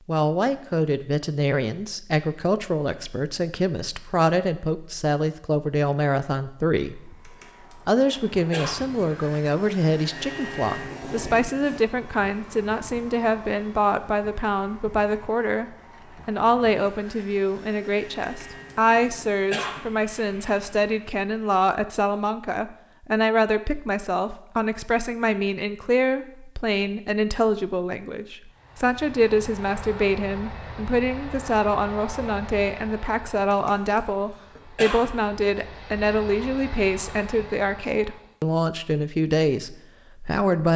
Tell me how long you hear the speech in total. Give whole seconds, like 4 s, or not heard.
41 s.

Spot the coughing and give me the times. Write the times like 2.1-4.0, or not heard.
7.2-8.8, 18.2-19.9, 33.5-35.1.